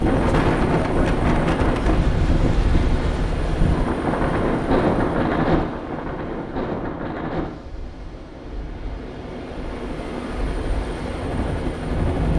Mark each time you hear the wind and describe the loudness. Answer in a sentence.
The wind can be heard from 0.0 to 12.3 s, getting quieter.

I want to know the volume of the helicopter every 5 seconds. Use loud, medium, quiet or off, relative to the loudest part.
loud, medium, loud.